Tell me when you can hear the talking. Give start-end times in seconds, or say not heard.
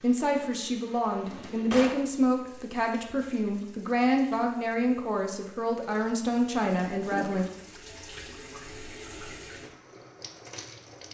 0.0-7.5.